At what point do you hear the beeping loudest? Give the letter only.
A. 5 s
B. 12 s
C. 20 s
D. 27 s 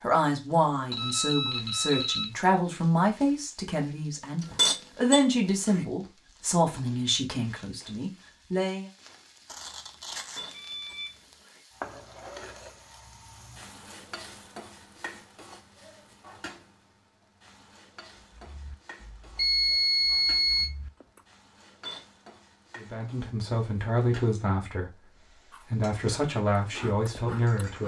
C.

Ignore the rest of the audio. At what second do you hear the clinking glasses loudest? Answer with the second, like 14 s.
5 s.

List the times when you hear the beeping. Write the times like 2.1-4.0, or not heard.
0.9-2.3, 9.4-11.1, 19.4-20.7.